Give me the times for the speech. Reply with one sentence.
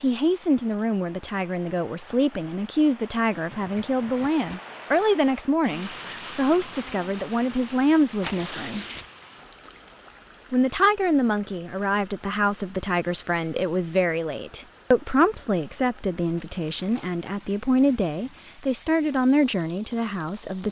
The speech can be heard from 0.0 to 8.8 s and from 10.5 to 20.6 s.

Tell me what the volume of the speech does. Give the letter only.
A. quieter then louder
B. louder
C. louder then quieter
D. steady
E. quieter
D.